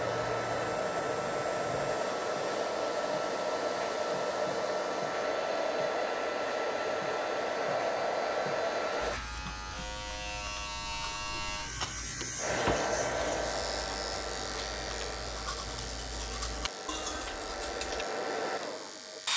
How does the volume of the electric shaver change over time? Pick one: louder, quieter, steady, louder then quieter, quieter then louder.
louder then quieter.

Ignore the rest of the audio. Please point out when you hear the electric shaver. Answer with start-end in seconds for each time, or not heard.
0.0-19.3.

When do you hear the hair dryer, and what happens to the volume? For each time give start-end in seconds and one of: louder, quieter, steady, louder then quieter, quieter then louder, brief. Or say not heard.
0.0-9.2 steady
12.3-19.3 quieter then louder.